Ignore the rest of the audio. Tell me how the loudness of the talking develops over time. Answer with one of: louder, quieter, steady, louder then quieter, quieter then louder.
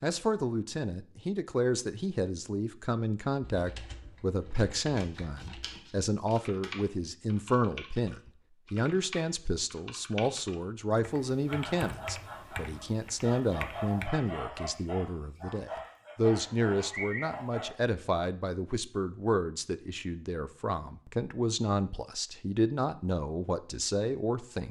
steady.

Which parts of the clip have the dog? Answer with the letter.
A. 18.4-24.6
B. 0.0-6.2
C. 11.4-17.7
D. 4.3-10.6
C.